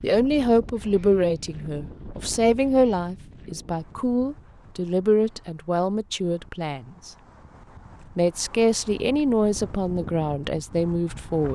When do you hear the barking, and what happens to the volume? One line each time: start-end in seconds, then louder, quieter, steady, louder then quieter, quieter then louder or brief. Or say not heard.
not heard.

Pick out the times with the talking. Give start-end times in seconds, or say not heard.
0.0-7.1, 8.2-11.4.